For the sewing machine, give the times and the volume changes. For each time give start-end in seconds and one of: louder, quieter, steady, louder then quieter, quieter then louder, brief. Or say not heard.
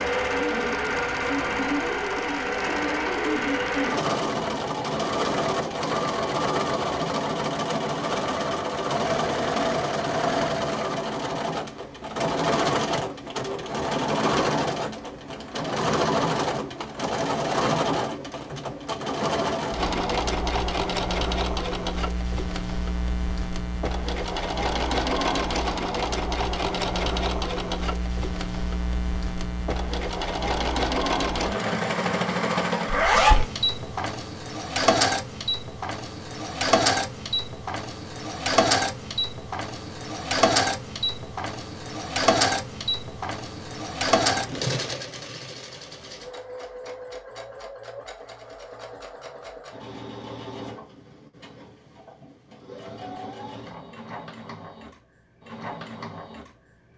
0.0-56.9 quieter.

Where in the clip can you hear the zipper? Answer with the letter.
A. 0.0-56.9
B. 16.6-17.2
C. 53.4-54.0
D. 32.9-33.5
D.